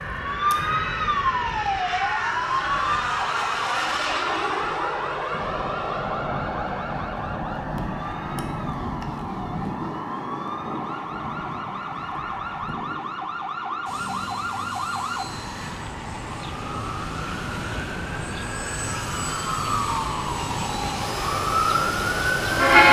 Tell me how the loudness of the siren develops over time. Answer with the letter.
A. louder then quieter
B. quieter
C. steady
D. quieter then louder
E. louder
D.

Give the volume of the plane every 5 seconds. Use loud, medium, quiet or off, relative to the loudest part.
loud, loud, medium, medium, loud.